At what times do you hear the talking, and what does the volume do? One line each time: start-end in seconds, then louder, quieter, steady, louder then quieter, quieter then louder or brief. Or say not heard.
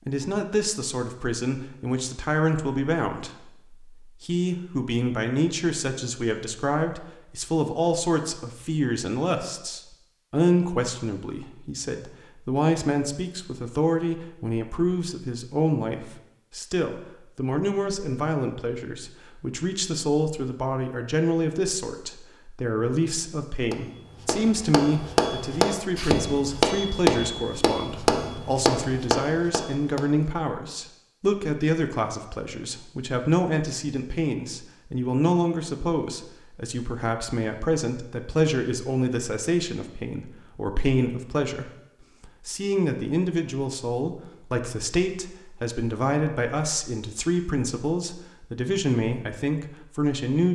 0.1-50.5 steady.